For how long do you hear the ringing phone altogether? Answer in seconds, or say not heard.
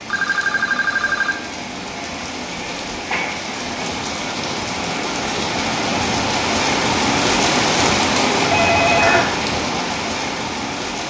2 s.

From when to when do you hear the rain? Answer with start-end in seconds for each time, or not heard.
0.0-11.0.